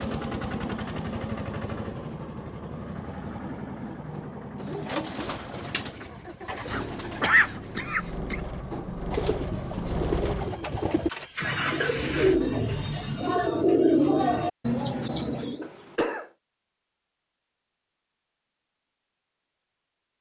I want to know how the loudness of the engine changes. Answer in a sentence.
The loudness of the engine goes down, then up.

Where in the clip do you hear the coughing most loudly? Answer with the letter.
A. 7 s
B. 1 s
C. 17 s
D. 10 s
A.